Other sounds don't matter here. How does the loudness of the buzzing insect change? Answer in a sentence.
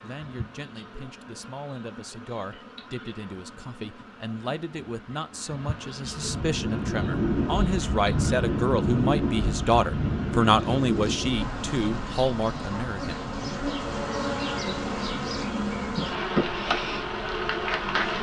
The volume of the buzzing insect goes up.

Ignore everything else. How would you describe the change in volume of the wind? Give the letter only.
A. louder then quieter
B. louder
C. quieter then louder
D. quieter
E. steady
D.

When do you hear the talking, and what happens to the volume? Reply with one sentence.
The talking can be heard from 0.0 to 13.2 s, getting louder.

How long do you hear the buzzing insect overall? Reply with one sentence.
You can hear the buzzing insect for 18 seconds altogether.